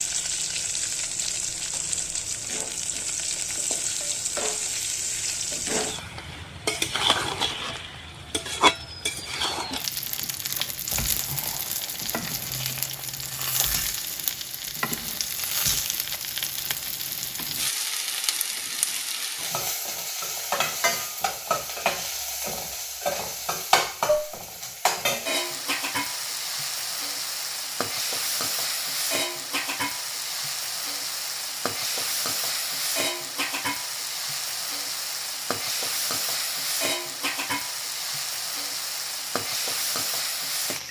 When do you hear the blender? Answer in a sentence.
You can't hear the blender here.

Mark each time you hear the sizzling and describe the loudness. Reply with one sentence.
You can hear the sizzling from 0.0 to 40.8 s, at a steady volume.